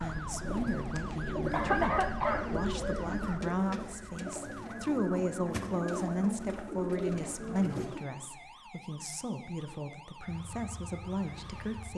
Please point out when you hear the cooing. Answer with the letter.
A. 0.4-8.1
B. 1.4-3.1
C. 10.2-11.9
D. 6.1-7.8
A.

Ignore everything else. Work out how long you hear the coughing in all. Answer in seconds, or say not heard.
2 s.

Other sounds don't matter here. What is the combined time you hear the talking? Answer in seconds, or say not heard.
12 s.